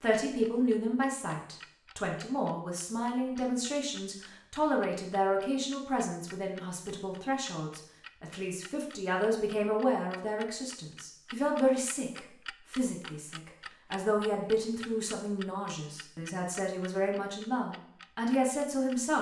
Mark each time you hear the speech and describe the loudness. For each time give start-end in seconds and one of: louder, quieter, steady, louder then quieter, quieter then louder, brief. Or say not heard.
0.0-19.1 steady.